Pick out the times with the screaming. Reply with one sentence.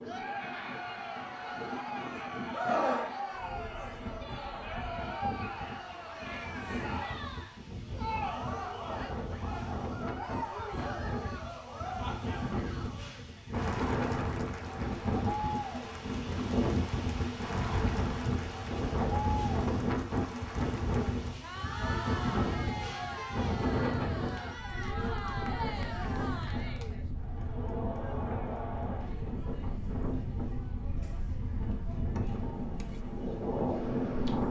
The screaming can be heard from 2.5 to 3.8 s.